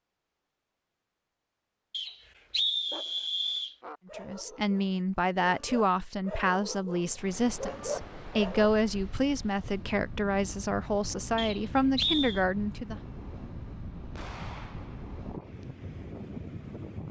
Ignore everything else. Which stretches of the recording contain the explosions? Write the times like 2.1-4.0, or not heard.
14.2-15.2.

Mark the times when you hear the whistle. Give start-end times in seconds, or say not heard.
1.9-3.8, 11.3-12.4.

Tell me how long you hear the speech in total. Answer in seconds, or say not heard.
9 s.